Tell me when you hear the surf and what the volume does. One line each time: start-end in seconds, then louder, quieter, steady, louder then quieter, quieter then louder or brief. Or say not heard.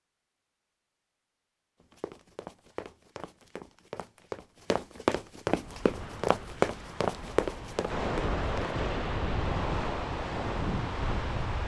5.5-11.6 louder.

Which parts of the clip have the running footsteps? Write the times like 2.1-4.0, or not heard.
1.8-8.8.